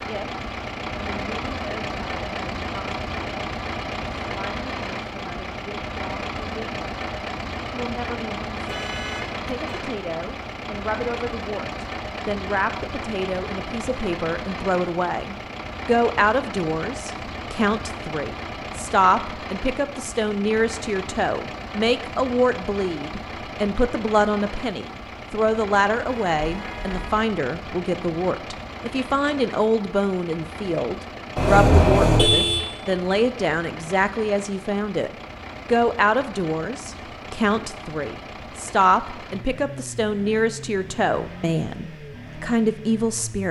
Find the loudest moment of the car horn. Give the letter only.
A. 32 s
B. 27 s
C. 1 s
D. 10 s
A.